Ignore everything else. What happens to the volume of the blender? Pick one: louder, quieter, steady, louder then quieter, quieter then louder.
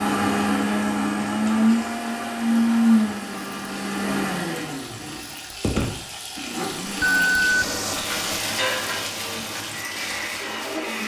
quieter.